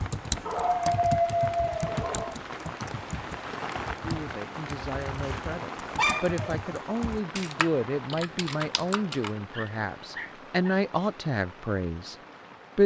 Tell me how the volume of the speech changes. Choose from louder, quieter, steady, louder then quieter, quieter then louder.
louder.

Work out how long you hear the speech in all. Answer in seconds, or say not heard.
8 s.